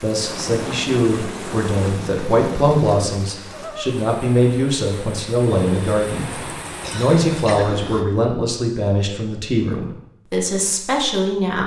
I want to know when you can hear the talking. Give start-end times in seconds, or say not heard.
0.0-11.6.